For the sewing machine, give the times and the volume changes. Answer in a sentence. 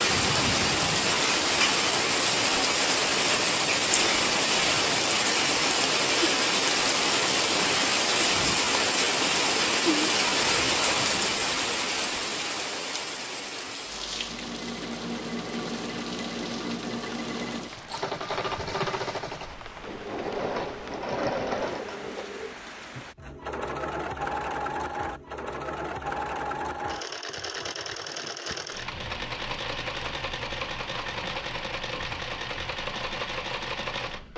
The sewing machine can be heard from 13.9 to 34.3 s, at a steady volume.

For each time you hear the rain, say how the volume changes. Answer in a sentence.
You can hear the rain from 0.0 to 23.1 s, getting quieter.